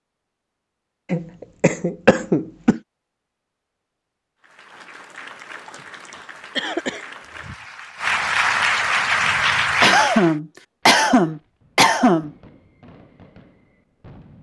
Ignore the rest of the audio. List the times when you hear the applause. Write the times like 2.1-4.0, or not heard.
4.4-10.3.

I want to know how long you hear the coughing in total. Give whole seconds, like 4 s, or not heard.
6 s.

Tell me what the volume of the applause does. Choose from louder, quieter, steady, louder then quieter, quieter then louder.
louder.